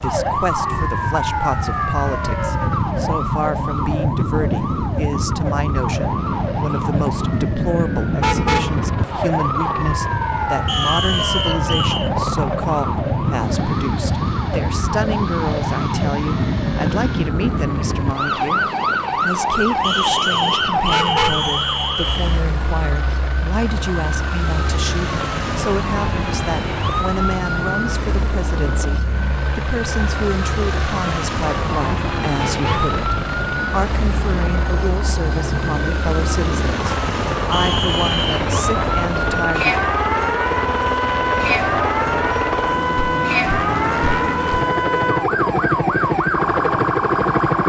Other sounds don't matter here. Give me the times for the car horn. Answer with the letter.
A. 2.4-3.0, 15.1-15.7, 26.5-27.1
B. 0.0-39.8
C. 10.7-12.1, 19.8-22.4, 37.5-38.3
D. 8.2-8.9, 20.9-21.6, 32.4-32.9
D.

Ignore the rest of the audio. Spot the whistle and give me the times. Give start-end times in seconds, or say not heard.
10.7-12.1, 19.8-22.4, 37.5-38.3.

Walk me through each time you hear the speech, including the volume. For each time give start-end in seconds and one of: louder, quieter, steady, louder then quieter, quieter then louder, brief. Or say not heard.
0.0-39.8 steady.